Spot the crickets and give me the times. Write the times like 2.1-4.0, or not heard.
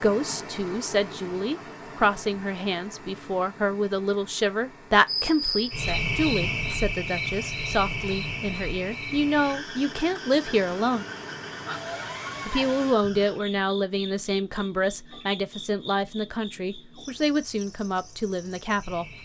5.0-19.2.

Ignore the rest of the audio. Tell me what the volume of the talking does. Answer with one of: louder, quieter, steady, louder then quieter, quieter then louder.
steady.